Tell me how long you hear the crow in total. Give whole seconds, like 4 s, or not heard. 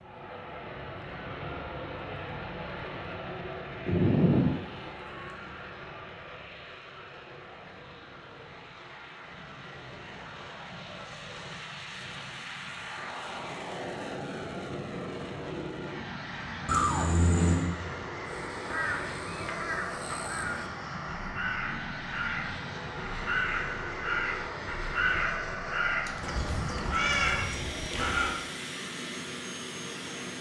10 s.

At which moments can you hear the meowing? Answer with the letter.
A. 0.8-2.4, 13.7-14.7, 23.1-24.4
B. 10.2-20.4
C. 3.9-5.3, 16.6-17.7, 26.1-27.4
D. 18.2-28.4
C.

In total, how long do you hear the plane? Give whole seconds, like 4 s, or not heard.
30 s.